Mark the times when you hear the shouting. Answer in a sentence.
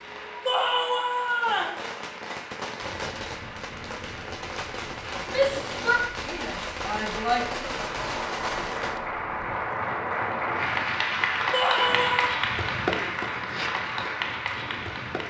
The shouting can be heard from 0.5 to 1.8 s, from 5.2 to 7.8 s and from 11.5 to 12.3 s.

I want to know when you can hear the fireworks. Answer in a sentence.
You can hear the fireworks from 1.4 to 9.0 s.